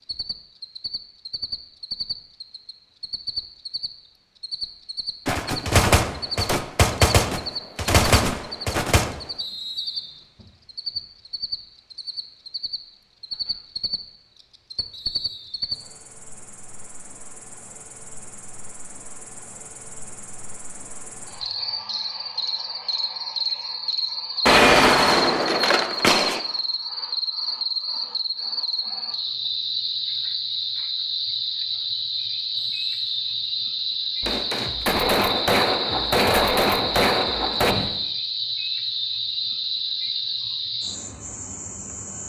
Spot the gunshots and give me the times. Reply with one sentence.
You can hear the gunshots from 5.2 to 9.2 s, from 24.4 to 26.4 s and from 34.2 to 38.0 s.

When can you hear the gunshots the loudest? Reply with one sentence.
The volume of the gunshots peaks at 25 seconds.